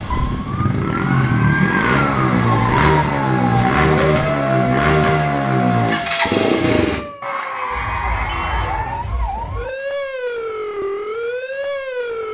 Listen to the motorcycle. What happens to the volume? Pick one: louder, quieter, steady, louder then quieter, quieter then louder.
steady.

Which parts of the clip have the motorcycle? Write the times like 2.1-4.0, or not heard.
0.0-7.0.